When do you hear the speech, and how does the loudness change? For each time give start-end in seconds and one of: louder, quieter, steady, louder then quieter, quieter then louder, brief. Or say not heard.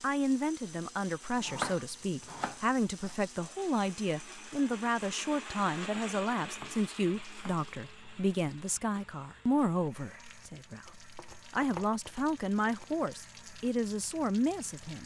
0.0-15.0 steady.